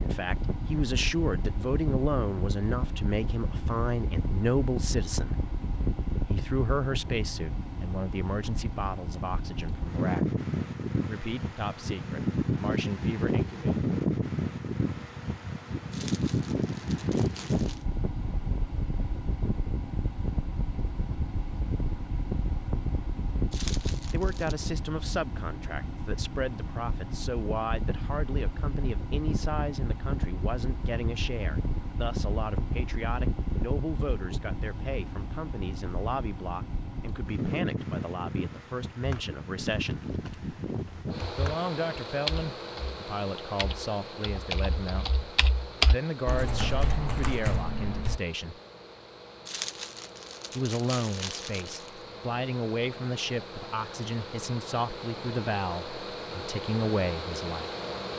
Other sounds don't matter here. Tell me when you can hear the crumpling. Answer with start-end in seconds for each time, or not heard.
15.9-17.9, 23.5-24.6, 49.5-51.9.